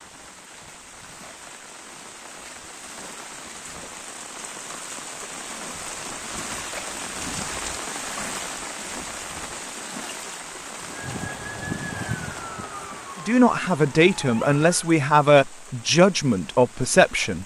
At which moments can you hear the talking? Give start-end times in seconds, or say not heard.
13.2-17.4.